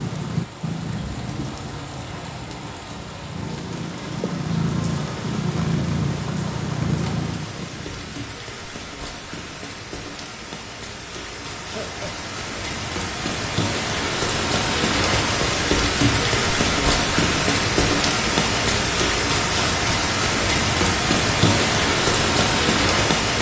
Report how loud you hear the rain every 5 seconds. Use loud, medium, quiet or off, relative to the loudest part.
quiet, quiet, medium, loud, loud.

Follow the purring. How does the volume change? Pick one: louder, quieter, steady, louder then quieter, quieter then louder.
quieter then louder.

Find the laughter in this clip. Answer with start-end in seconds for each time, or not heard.
11.6-12.3.